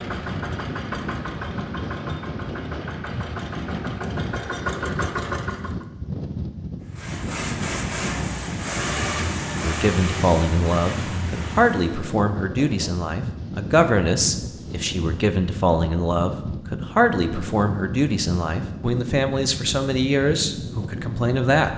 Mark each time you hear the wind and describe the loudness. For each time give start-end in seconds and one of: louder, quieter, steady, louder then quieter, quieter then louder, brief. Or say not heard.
0.0-21.7 steady.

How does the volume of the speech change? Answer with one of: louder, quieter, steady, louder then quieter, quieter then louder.
steady.